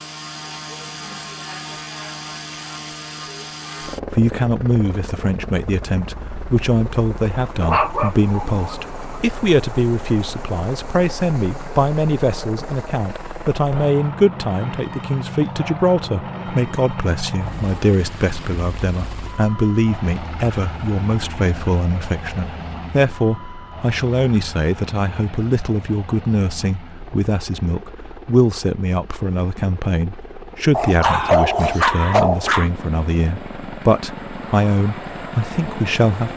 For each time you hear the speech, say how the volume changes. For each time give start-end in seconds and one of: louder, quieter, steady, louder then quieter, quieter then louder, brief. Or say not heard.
4.0-36.3 steady.